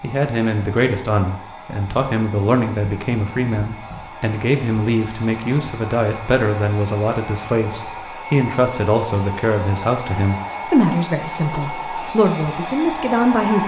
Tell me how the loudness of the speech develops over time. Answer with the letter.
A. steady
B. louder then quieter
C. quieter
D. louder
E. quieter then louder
A.